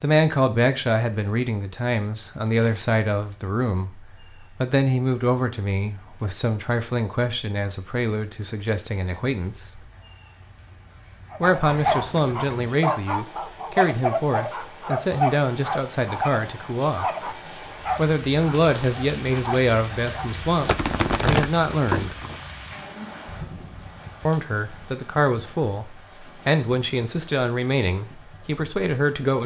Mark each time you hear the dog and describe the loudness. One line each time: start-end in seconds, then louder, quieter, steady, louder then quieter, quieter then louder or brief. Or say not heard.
11.3-20.4 quieter.